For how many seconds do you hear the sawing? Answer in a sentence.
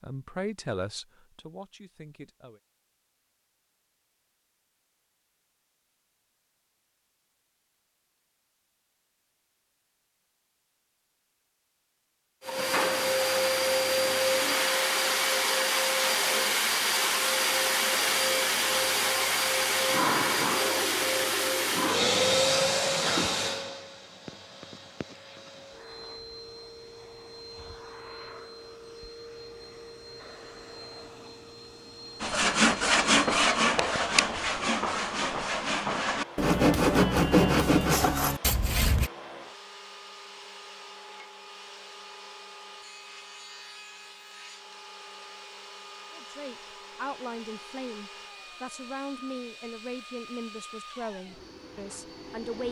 The sawing can be heard for 7 seconds in total.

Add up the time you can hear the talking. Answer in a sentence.
The talking can be heard for 9 seconds in total.